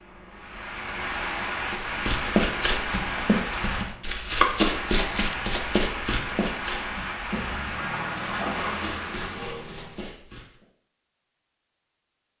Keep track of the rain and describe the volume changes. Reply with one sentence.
The volume of the rain stays about the same.